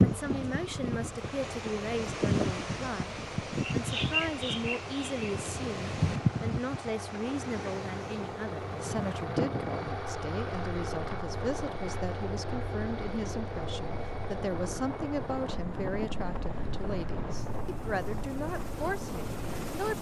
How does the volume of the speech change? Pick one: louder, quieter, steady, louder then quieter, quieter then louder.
steady.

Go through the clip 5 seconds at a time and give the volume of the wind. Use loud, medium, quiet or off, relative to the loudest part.
loud, loud, quiet, medium.